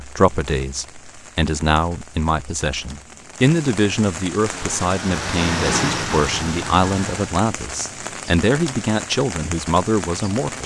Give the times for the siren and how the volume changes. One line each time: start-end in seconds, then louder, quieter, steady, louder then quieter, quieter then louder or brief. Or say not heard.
not heard.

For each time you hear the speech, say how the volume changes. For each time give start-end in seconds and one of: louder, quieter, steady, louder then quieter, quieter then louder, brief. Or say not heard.
0.0-10.6 steady.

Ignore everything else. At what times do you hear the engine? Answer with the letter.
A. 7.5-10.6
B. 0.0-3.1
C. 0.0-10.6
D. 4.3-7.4
D.